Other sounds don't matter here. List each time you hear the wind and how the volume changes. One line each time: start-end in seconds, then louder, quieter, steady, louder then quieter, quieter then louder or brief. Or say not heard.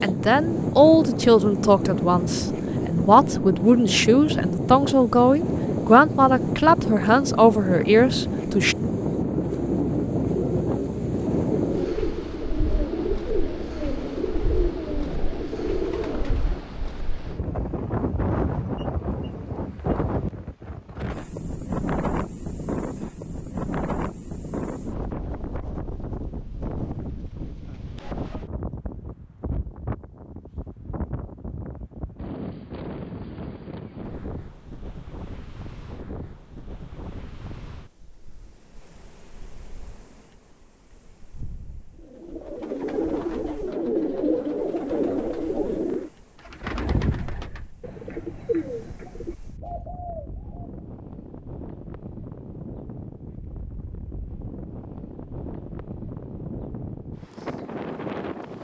0.0-58.5 quieter then louder.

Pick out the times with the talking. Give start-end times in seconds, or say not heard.
0.0-8.8.